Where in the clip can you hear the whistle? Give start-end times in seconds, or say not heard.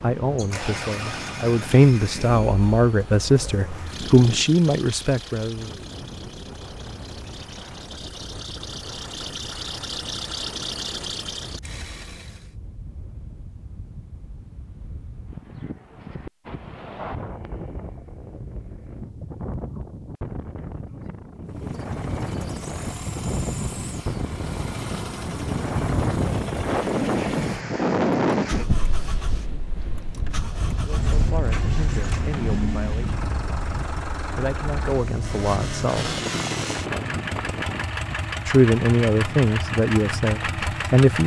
not heard.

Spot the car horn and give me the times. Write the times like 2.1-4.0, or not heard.
30.9-32.9.